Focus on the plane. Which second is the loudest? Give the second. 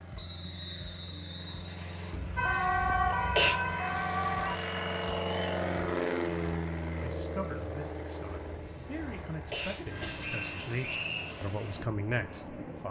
6 s.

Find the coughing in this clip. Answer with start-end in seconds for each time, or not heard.
2.1-3.5, 8.4-10.3.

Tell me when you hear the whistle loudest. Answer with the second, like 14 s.
11 s.